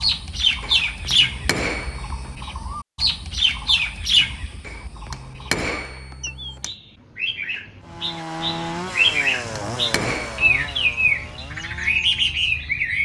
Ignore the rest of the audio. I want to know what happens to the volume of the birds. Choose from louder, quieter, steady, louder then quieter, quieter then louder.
quieter then louder.